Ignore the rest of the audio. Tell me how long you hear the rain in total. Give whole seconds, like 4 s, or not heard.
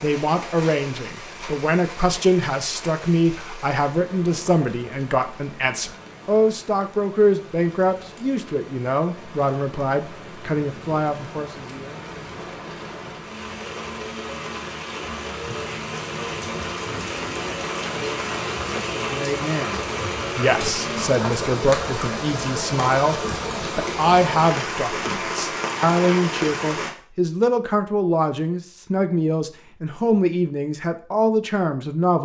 27 s.